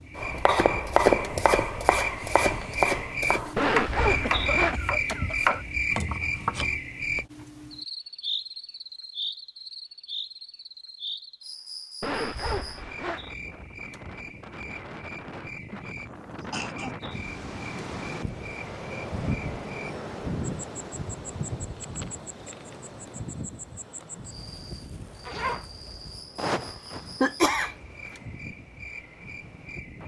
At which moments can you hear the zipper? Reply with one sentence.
You can hear the zipper from 3.5 to 4.8 s, from 12.0 to 13.2 s and from 25.2 to 25.6 s.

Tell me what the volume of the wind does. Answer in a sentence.
The loudness of the wind goes up, then down.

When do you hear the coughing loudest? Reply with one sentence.
The volume of the coughing peaks at 27 seconds.